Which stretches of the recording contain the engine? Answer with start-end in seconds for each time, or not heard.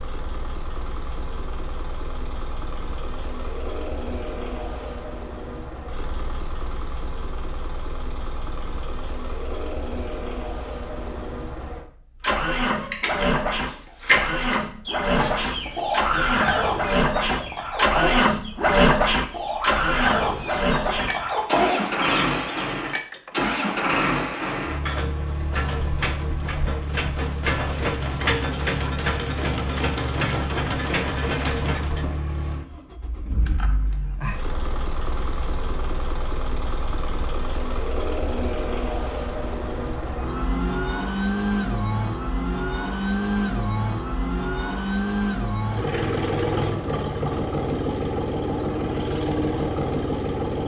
0.0-50.6.